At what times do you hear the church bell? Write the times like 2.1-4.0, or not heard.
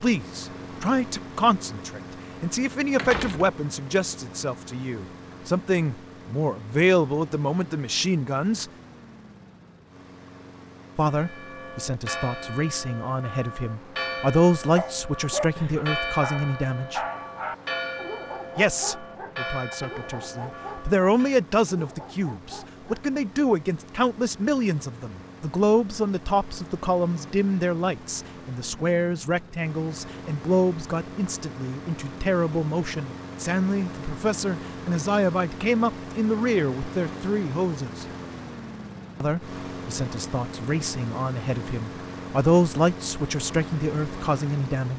11.0-21.4.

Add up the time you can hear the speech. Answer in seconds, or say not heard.
40 s.